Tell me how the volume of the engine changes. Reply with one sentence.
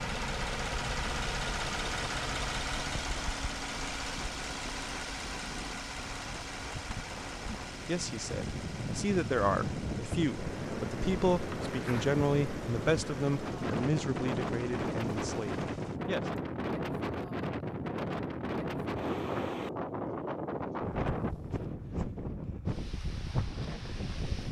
The volume of the engine goes down.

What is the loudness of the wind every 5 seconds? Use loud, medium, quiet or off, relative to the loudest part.
quiet, medium, loud, loud, loud.